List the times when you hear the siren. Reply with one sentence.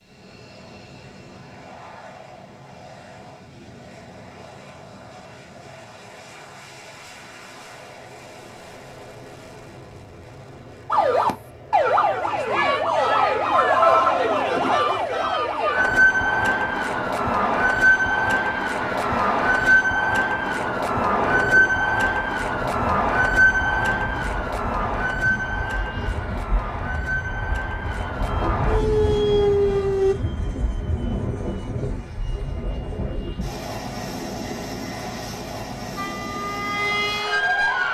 You can hear the siren from 10.9 to 30.1 s and from 36.0 to 37.8 s.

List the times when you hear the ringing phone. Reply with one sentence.
The ringing phone can be heard from 13.5 to 14.9 s.